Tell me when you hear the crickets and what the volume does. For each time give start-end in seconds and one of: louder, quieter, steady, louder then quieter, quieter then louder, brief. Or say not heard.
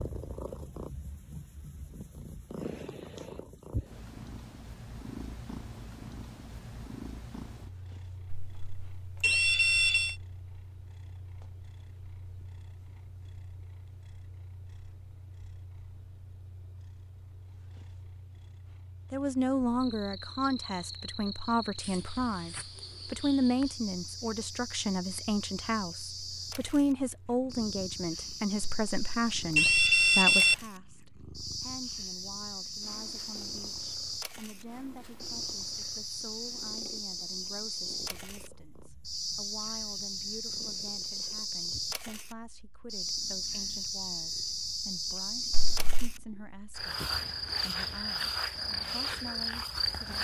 19.8-50.2 louder.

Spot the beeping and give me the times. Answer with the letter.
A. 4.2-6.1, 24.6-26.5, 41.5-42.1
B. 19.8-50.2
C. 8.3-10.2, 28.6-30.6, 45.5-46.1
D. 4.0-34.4
C.